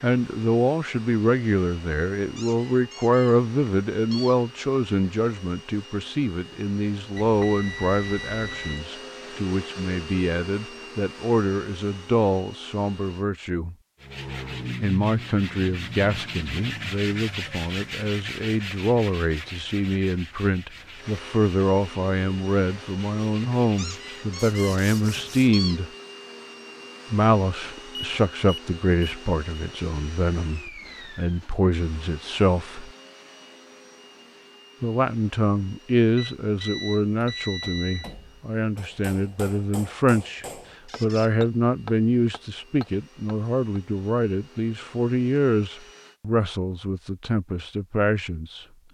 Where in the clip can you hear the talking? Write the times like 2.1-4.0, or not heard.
0.0-13.8, 14.8-25.9, 27.1-32.9, 34.8-48.6.